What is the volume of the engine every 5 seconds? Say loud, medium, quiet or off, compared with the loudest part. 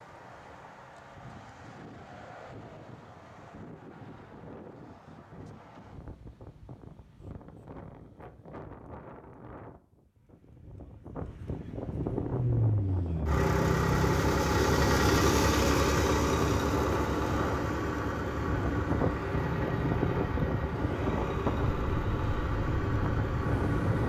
off, off, loud, loud, medium.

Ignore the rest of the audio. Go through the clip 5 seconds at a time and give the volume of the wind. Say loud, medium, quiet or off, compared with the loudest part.
quiet, quiet, medium, loud, loud.